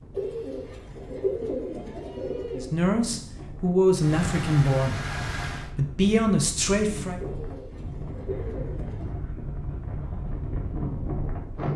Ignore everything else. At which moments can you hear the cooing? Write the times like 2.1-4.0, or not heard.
0.1-2.7, 7.2-9.2.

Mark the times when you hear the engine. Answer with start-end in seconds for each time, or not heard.
4.0-5.8.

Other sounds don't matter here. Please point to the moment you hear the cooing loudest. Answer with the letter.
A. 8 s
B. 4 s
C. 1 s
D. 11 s
C.